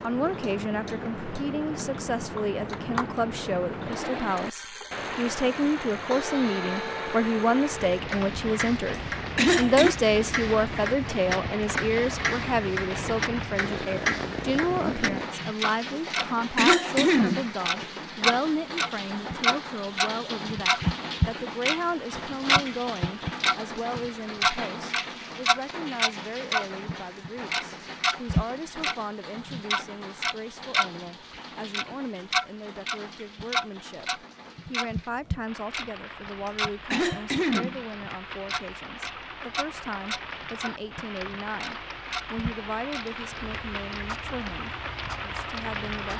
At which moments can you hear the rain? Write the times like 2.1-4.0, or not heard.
0.0-46.1.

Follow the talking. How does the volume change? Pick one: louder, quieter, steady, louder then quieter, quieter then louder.
quieter.